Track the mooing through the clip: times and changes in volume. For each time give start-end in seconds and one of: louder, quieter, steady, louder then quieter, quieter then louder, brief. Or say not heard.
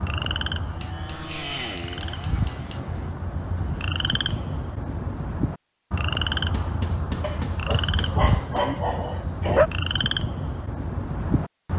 not heard.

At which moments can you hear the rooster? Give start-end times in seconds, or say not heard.
not heard.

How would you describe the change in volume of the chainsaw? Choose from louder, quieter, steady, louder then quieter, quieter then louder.
louder then quieter.